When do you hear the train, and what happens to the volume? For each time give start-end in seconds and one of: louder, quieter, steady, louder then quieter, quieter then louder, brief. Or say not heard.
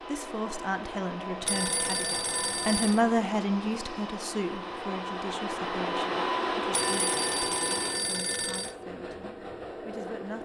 0.0-10.4 louder then quieter.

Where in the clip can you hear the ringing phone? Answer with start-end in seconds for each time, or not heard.
1.4-3.0, 6.7-8.8.